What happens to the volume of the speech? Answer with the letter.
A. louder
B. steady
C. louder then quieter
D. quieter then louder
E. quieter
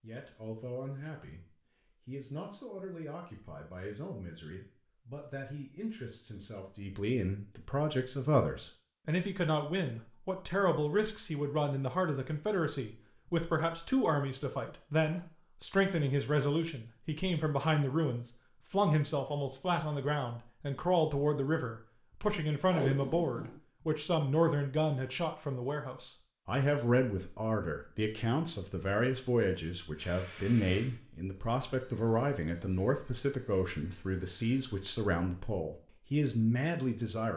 A.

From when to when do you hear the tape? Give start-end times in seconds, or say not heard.
22.6-23.6.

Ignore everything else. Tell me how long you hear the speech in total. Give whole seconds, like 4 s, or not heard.
37 s.